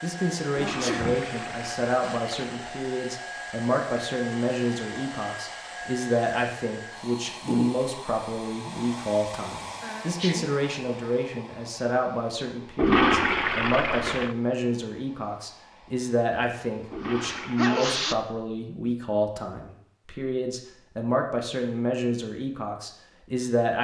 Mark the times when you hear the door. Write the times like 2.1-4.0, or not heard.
not heard.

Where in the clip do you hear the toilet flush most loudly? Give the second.
13 s.